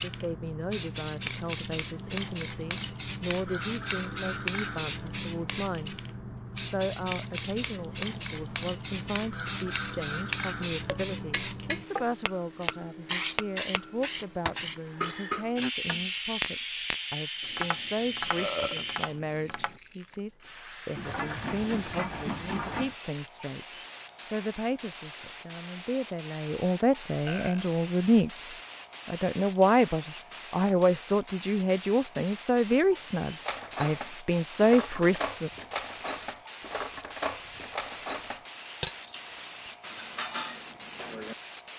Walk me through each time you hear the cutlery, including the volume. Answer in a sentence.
The cutlery can be heard from 33.5 to 41.7 s, at a steady volume.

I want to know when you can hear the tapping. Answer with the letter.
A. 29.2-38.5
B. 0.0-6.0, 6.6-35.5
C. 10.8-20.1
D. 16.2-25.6
C.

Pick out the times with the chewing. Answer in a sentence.
You can't hear the chewing here.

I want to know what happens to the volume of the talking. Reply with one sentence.
The loudness of the talking goes up.